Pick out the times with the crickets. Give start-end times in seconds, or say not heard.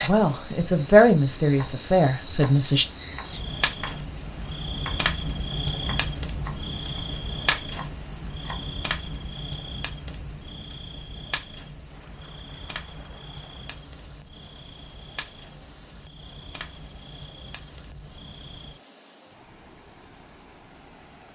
0.0-21.1.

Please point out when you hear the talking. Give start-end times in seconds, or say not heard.
0.1-2.9.